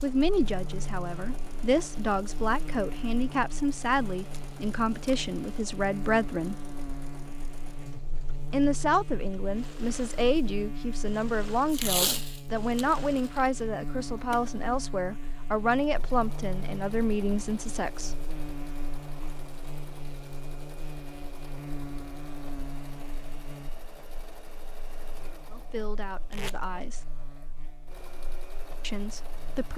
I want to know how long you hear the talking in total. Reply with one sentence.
The talking can be heard for 19 seconds in total.